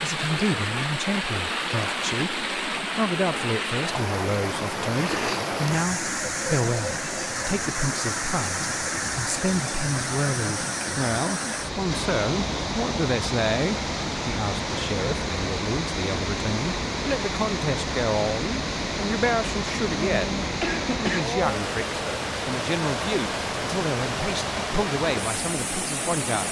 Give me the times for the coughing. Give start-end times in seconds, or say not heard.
5.0-5.5, 19.9-21.4.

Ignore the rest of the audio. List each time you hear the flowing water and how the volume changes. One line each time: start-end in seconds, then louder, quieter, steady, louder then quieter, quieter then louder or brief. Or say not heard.
0.0-26.4 steady.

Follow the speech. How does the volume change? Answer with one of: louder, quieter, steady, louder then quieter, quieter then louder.
steady.